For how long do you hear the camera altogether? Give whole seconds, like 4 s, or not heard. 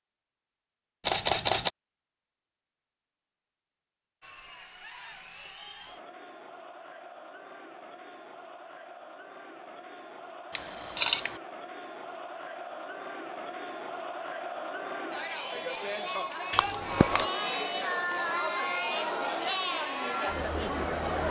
2 s.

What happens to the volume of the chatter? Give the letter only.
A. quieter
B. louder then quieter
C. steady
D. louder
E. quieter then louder
D.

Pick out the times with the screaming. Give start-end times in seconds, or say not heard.
not heard.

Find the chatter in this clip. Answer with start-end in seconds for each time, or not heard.
4.2-21.2.